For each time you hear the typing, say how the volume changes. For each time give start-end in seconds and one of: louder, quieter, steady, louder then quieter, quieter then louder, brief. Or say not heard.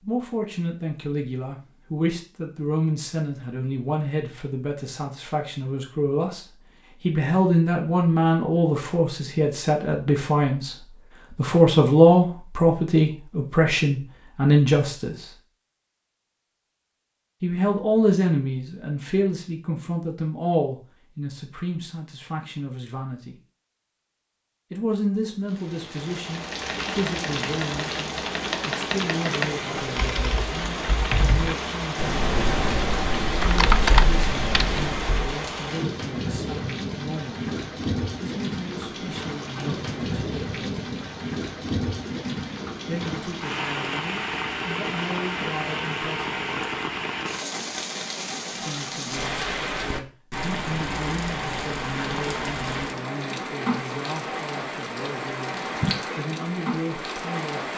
26.3-35.3 louder.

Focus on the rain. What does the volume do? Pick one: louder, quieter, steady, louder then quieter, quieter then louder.
steady.